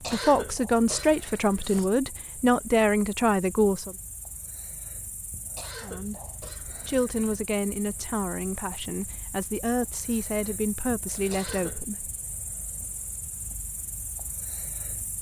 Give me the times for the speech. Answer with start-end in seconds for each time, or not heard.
0.1-4.0, 5.8-12.1.